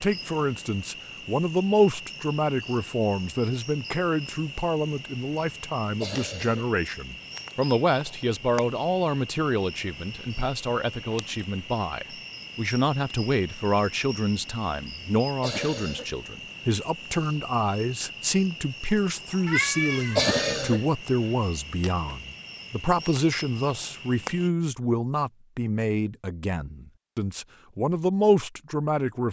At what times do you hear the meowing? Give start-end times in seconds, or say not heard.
18.9-20.6.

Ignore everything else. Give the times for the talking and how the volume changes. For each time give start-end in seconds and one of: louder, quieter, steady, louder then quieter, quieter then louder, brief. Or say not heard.
0.0-29.2 steady.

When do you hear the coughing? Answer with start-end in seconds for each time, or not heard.
6.0-6.7, 15.4-17.4, 20.1-20.9.